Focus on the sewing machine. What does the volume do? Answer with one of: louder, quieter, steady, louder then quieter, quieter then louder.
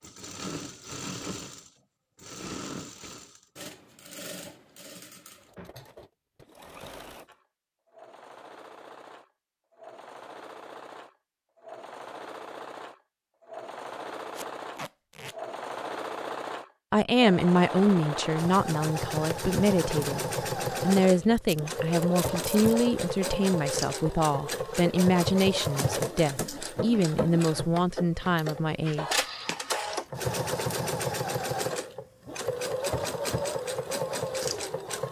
louder.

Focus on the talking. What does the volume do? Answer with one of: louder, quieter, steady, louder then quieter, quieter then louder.
steady.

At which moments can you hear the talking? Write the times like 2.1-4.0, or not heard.
16.9-29.2.